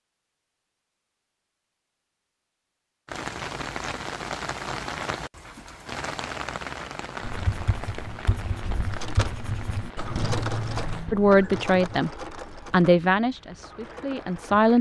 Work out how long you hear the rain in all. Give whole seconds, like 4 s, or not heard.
12 s.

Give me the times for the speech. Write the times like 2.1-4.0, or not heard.
11.1-14.7.